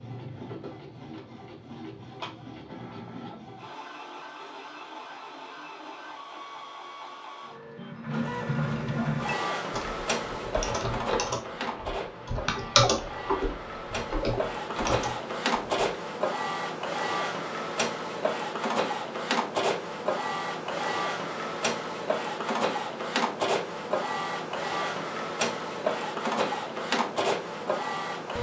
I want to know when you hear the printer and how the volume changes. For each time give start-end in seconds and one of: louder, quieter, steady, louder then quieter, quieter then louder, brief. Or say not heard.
0.0-28.3 louder.